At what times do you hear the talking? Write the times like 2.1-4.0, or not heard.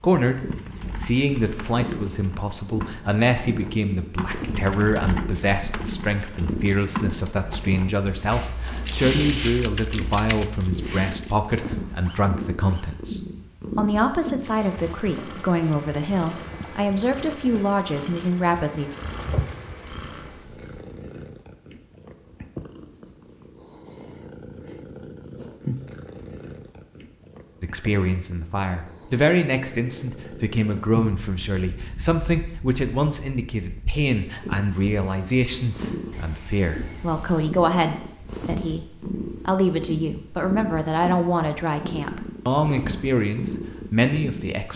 0.0-0.4, 1.0-18.9, 27.6-44.7.